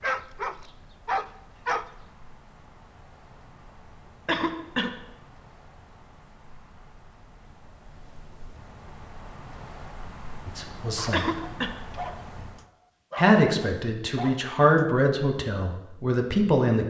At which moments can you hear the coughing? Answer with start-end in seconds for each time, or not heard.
4.2-5.0, 11.1-11.8.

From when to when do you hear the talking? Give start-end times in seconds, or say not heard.
10.4-11.4, 13.2-16.8.